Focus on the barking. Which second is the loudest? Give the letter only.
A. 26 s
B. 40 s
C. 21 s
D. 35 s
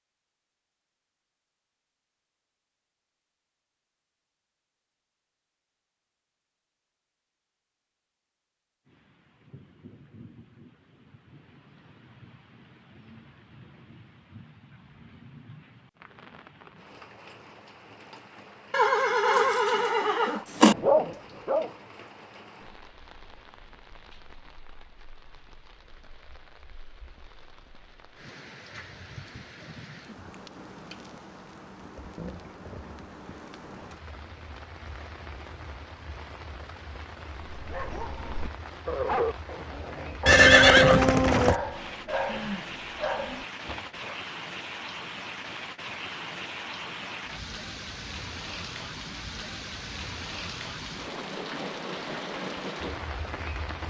C.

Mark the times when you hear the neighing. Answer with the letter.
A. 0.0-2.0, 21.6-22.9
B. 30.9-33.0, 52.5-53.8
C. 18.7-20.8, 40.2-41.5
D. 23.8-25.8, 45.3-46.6
C.